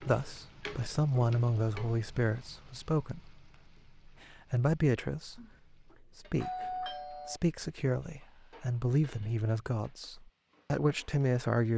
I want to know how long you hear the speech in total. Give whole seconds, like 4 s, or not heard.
10 s.